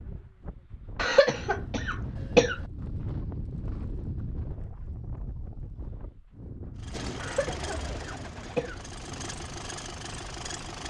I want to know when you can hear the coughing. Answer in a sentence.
You can hear the coughing from 0.9 to 2.5 s and from 7.2 to 8.8 s.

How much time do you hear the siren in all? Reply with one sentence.
The siren can't be heard in this clip.